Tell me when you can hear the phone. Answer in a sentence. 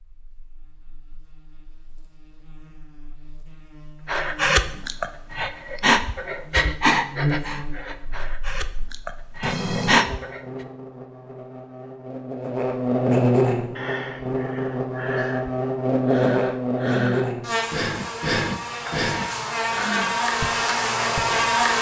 The phone can be heard from 9.4 to 10.1 s.